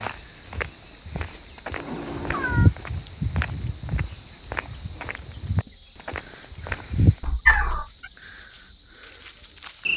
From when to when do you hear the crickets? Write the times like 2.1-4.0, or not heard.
0.0-9.9.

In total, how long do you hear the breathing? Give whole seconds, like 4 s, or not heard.
not heard.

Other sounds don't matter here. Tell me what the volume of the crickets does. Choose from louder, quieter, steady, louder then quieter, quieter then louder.
steady.